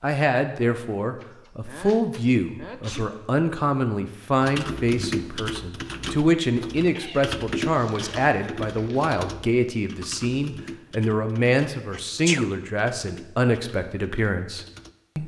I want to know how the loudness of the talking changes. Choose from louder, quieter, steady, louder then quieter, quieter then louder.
steady.